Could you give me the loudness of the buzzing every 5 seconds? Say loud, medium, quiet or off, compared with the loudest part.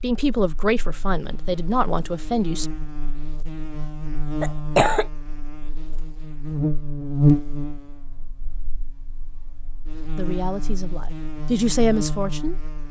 medium, loud, medium.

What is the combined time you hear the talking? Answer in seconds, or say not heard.
5 s.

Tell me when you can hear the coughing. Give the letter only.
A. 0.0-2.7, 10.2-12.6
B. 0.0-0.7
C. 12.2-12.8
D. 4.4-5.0
D.